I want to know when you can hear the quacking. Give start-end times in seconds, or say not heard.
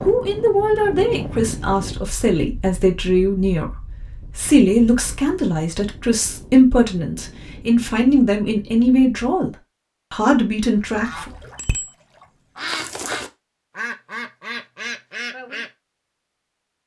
10.8-15.7.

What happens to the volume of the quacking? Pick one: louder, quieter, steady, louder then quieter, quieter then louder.
louder.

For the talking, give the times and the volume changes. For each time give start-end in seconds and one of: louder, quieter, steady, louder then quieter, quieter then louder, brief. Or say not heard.
0.0-11.3 steady.